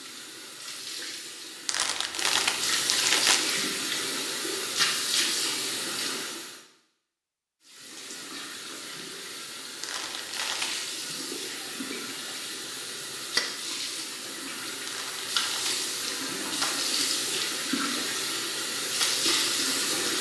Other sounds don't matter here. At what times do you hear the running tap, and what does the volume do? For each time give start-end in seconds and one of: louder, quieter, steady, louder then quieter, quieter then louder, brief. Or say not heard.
0.0-6.6 louder
7.6-20.1 louder.